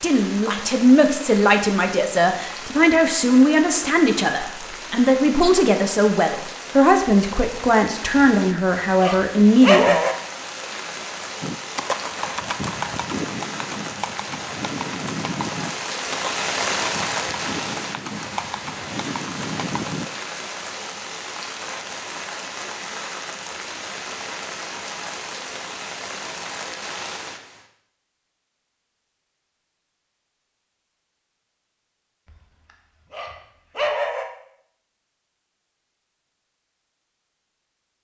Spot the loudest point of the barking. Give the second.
10 s.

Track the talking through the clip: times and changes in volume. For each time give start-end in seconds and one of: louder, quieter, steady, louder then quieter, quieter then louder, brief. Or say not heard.
0.0-10.0 steady.